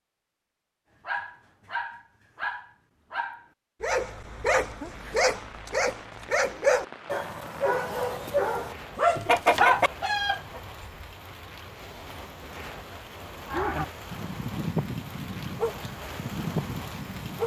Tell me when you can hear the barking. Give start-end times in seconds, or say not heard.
1.1-9.7, 13.4-17.4.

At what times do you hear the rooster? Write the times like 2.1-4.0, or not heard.
9.2-11.1.